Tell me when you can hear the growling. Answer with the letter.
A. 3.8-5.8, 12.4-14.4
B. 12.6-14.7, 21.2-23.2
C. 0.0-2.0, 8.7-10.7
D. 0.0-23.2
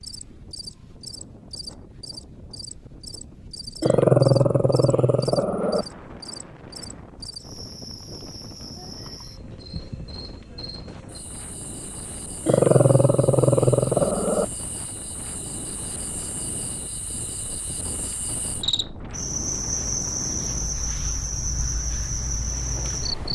A.